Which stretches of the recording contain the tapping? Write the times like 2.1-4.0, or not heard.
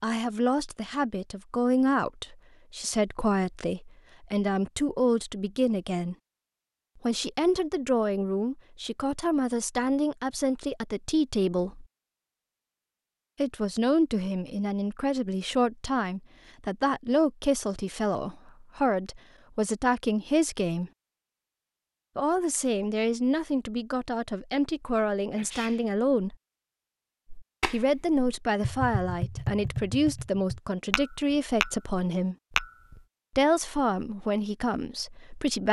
27.3-33.0.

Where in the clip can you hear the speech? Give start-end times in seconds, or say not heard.
0.0-6.2, 7.0-11.8, 13.3-20.9, 22.1-26.4, 27.7-32.4, 33.4-35.6.